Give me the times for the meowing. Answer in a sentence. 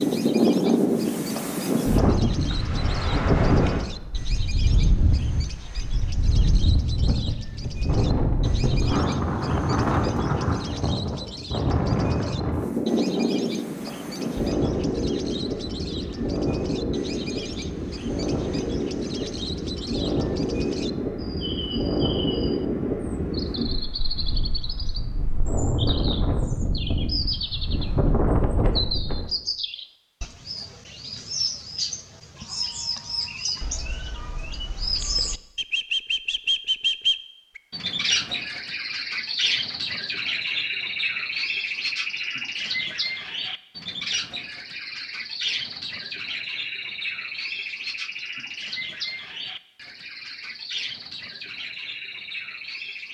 You can't hear the meowing here.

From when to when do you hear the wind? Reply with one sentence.
The wind can be heard from 0.0 to 29.3 s.